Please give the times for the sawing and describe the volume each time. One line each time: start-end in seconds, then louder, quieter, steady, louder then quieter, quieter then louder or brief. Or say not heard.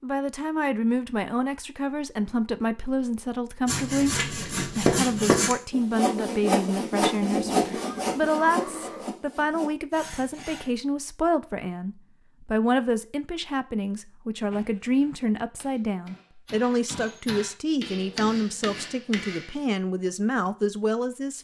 3.6-10.7 quieter.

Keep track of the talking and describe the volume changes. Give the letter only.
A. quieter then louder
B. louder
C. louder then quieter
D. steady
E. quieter
D.